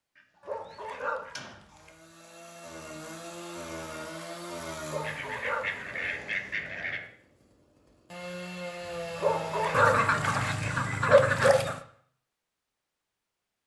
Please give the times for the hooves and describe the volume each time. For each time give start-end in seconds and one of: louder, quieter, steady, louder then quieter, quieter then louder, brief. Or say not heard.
not heard.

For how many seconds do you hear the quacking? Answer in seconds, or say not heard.
6 s.